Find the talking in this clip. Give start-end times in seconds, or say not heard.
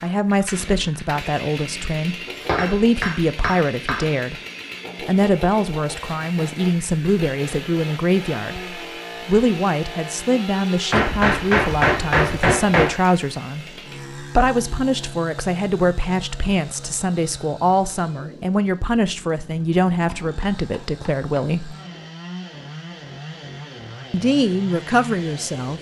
0.0-4.4, 5.0-21.8, 24.1-25.7.